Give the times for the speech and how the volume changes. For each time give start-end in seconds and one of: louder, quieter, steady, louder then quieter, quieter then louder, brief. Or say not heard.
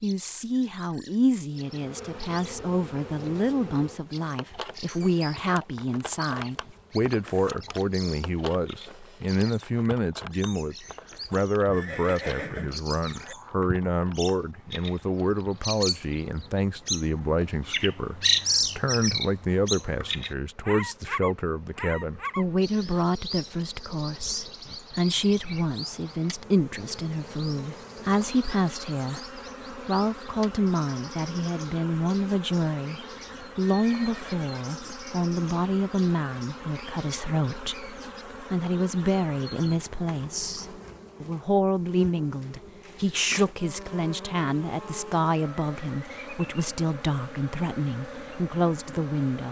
0.0-49.4 steady.